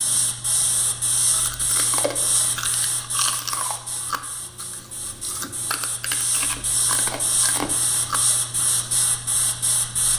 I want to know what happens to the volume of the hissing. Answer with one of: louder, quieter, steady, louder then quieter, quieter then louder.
quieter then louder.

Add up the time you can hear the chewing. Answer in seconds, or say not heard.
8 s.